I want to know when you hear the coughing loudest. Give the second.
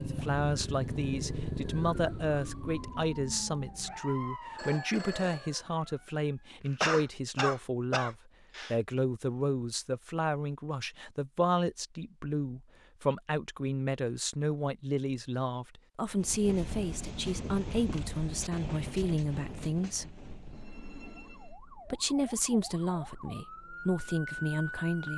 7 s.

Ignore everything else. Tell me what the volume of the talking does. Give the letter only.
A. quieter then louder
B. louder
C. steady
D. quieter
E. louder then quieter
C.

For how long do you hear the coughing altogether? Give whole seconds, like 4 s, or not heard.
2 s.